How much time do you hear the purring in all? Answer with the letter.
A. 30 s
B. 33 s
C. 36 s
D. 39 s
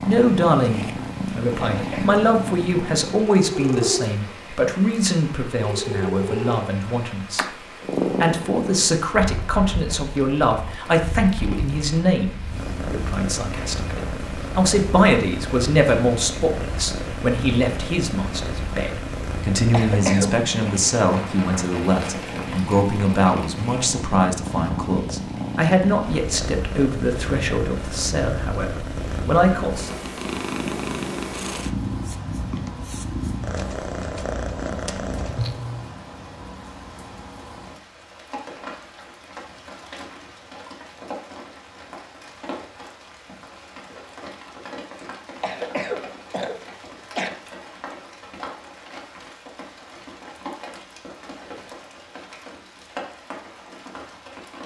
C.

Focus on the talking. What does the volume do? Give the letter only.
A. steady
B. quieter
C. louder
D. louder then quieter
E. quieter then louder
A.